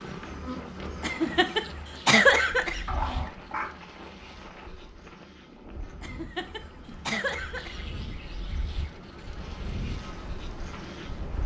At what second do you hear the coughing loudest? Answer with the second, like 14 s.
2 s.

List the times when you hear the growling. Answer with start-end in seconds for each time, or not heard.
2.9-3.8.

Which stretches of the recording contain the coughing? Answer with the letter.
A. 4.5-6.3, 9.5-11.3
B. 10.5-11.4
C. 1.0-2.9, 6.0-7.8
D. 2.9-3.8
C.